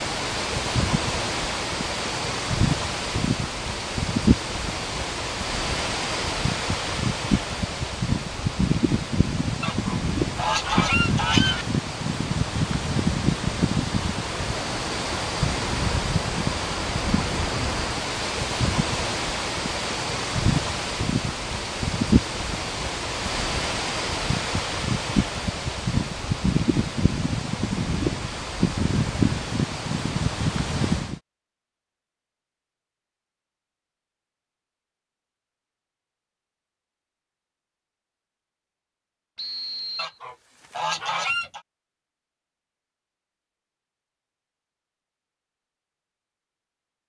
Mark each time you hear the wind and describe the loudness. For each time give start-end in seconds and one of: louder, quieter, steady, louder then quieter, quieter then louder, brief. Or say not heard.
0.0-31.2 steady.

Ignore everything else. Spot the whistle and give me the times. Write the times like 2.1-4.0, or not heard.
39.4-40.2.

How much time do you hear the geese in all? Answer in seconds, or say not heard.
4 s.